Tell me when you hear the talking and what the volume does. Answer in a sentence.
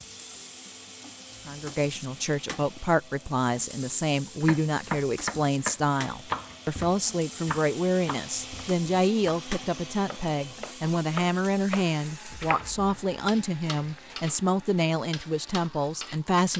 You can hear the talking from 1.4 to 16.5 s, at a steady volume.